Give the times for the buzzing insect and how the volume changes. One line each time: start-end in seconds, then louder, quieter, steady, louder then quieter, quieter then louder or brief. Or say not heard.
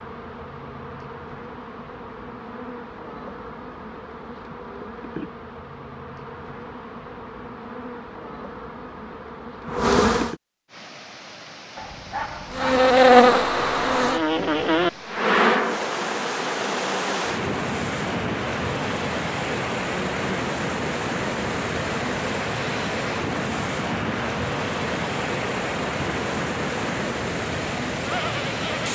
0.0-10.3 louder
12.5-28.9 quieter.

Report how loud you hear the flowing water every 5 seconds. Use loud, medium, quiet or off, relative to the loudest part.
off, off, quiet, loud, loud, loud.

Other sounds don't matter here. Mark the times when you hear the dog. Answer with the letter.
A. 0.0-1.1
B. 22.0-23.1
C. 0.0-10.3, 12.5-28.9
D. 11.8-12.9
D.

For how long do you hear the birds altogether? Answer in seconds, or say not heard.
not heard.